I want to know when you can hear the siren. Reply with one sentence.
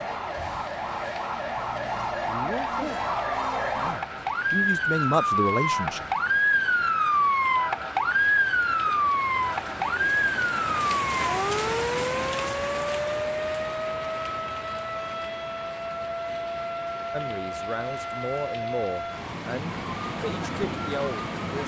The siren can be heard from 0.0 to 21.6 s.